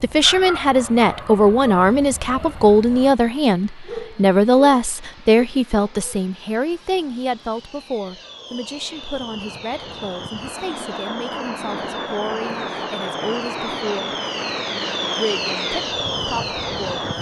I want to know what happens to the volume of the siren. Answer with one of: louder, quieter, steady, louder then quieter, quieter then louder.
louder.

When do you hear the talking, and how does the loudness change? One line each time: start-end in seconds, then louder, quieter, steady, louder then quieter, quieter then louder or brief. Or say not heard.
0.0-14.1 quieter
15.2-17.1 brief.